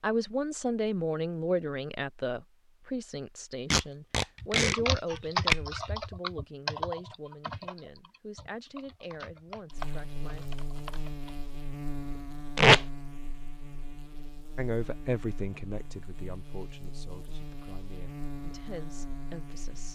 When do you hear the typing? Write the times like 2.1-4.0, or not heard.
4.4-11.3.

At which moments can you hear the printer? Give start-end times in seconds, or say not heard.
not heard.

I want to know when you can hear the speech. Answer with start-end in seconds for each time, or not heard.
0.0-10.4, 14.6-19.9.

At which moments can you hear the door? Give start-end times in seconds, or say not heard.
not heard.